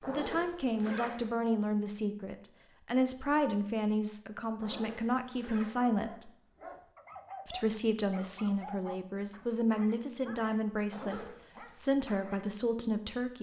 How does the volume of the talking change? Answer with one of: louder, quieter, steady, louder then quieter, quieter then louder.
steady.